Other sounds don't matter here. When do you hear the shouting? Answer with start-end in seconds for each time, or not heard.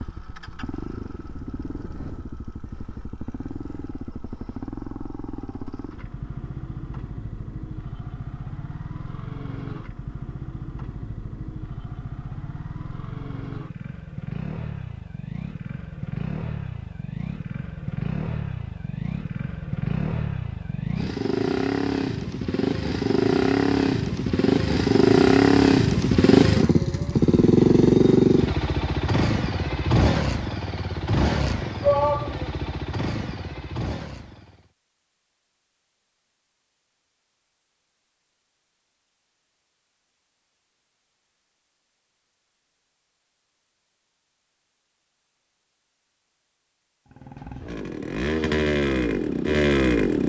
31.8-32.5.